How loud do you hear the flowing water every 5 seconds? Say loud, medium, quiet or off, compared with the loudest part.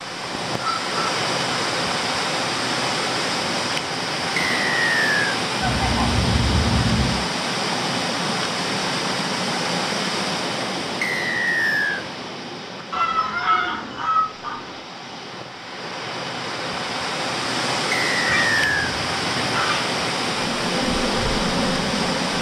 loud, loud, medium, loud, loud.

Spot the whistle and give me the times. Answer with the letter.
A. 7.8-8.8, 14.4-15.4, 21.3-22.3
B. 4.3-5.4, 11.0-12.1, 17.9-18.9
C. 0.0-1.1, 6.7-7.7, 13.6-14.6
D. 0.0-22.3
B.